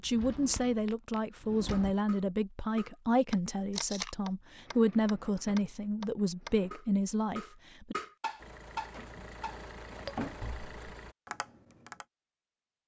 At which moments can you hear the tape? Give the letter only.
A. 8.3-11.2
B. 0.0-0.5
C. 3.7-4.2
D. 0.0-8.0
C.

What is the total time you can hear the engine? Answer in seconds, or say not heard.
3 s.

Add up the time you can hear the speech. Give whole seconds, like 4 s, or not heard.
8 s.